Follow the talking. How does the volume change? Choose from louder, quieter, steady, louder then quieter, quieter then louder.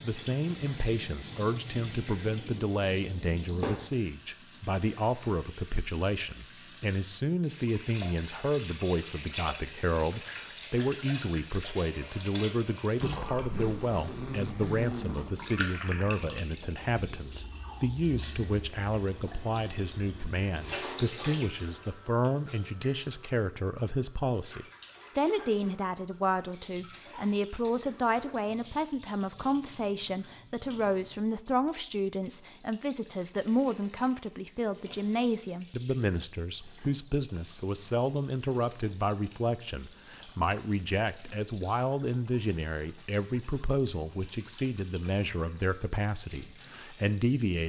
steady.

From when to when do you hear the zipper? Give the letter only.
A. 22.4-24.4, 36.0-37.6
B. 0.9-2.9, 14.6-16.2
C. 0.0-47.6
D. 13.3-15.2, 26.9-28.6
D.